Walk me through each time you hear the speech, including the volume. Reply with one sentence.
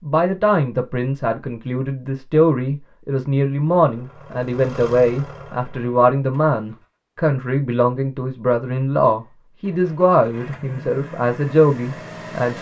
The speech can be heard from 0.0 to 12.5 s, at a steady volume.